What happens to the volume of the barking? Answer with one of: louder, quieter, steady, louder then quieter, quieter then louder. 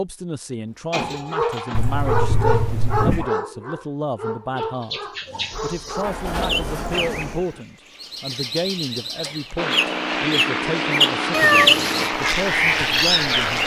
quieter.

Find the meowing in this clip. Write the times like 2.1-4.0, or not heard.
1.8-3.3, 11.3-12.1.